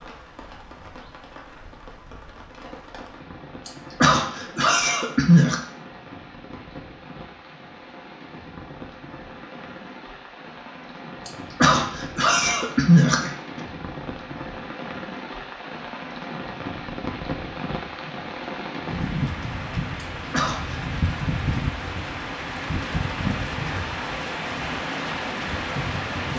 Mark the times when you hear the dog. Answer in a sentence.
You can't hear the dog here.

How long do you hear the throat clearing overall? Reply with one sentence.
You can hear the throat clearing for 5 seconds altogether.